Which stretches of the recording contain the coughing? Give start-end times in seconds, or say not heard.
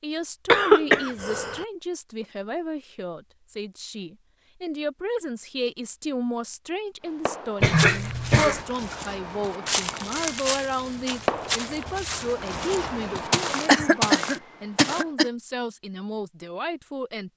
0.5-1.6, 7.6-8.6, 13.7-15.2.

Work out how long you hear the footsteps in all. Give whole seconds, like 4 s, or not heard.
7 s.